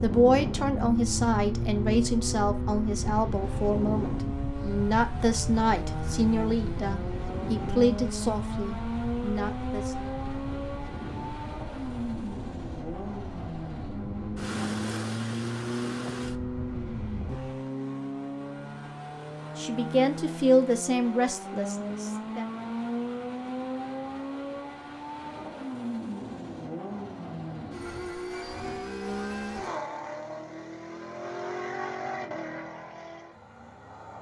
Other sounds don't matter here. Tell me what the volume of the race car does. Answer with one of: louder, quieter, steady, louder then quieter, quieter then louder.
steady.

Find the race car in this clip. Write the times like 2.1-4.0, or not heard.
0.0-34.1.